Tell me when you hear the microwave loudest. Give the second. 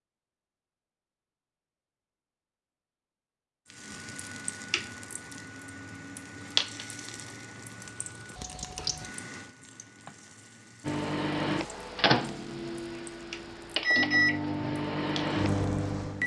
14 s.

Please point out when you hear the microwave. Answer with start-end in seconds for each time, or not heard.
10.8-16.2.